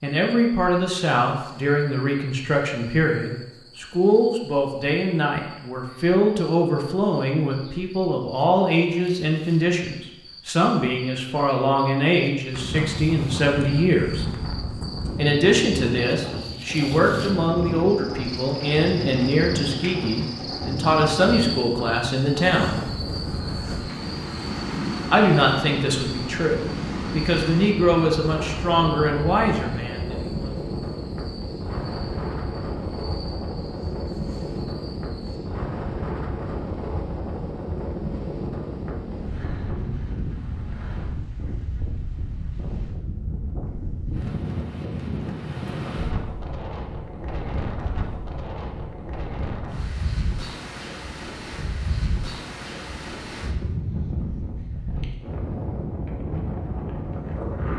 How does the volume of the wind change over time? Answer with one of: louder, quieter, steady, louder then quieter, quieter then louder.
steady.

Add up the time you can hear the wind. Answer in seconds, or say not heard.
45 s.